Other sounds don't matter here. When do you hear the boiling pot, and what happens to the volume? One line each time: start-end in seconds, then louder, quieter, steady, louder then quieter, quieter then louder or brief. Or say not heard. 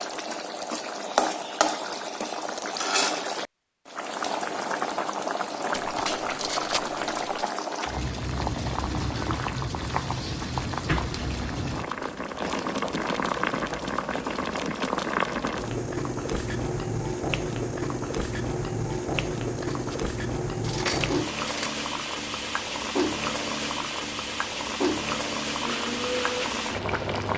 0.0-27.3 steady.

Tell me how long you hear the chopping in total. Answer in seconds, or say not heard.
not heard.